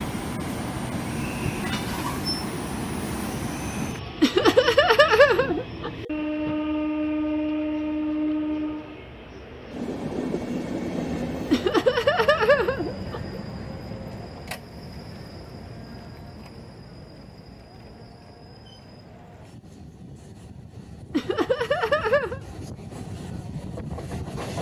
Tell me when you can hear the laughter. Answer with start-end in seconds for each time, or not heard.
4.2-6.1, 11.5-13.4, 21.1-22.4.